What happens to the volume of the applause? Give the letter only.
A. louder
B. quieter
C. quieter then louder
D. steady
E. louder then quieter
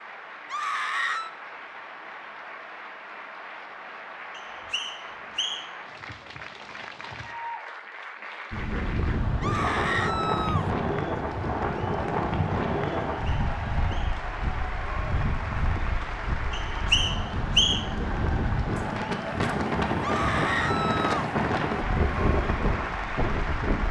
A.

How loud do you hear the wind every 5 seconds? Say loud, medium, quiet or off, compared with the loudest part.
off, loud, loud, loud, loud.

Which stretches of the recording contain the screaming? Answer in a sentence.
You can hear the screaming from 0.5 to 1.3 s, from 9.4 to 10.7 s and from 20.0 to 21.3 s.